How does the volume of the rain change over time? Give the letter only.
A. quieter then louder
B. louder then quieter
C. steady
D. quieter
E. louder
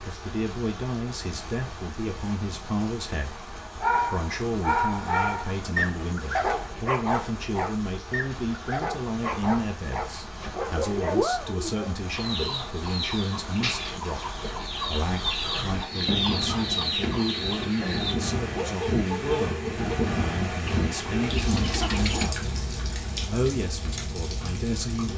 E.